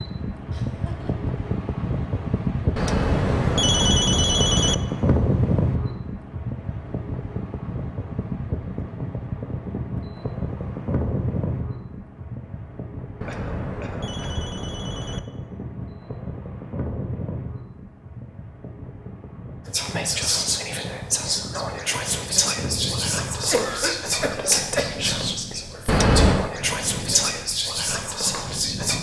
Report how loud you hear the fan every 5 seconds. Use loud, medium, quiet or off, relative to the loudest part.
loud, loud, medium, medium, medium, medium.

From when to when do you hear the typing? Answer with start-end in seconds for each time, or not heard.
not heard.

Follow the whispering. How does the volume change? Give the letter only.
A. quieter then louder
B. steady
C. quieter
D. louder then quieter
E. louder
B.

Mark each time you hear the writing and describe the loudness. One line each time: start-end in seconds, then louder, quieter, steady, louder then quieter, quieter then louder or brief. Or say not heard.
not heard.